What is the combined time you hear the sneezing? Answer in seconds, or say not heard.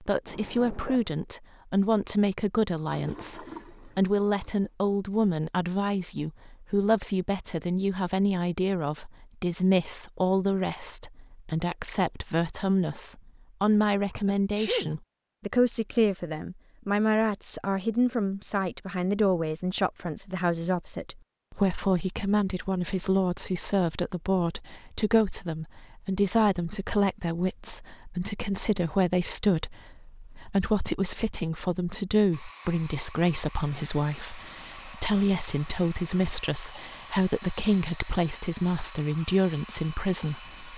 2 s.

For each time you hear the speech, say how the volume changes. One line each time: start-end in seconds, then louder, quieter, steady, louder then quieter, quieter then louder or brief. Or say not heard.
0.0-40.7 steady.